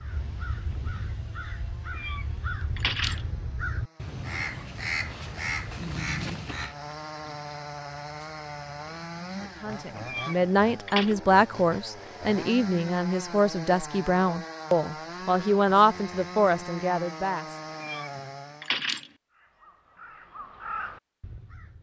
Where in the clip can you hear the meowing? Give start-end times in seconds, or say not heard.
1.9-3.2, 10.1-11.2, 17.8-19.1.